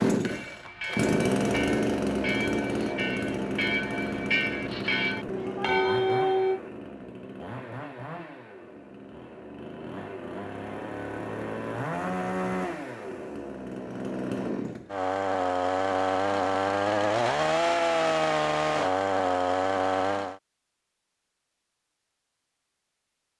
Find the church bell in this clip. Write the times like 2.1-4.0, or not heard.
0.2-6.6.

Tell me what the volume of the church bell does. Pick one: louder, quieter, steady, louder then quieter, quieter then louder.
louder.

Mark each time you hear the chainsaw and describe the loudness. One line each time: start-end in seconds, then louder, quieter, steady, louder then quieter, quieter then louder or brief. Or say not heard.
0.0-20.4 quieter then louder.